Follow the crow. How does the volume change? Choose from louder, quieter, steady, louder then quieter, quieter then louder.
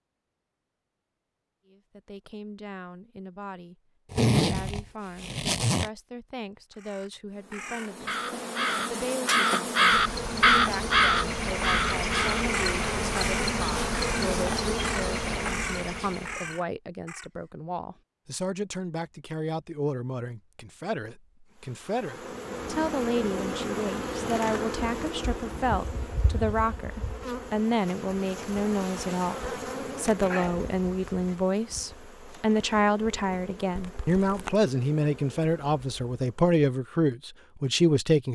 louder then quieter.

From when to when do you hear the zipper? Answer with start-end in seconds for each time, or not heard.
4.1-5.9, 33.8-34.5.